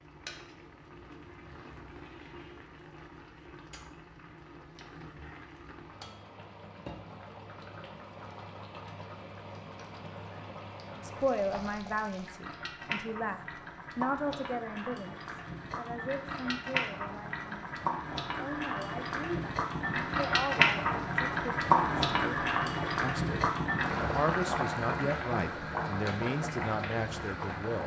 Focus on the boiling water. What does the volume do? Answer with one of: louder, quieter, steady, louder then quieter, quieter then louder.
louder.